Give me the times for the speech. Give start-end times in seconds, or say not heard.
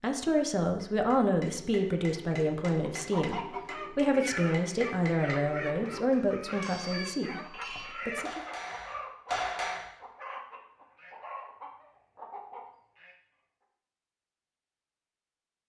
0.0-8.4.